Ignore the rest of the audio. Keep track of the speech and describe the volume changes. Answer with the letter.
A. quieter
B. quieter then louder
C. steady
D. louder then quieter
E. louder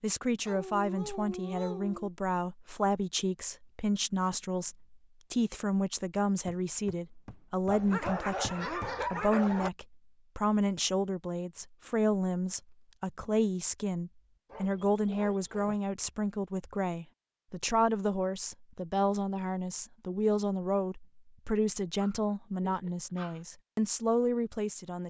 C.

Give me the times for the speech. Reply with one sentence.
The speech can be heard from 0.0 to 25.0 s.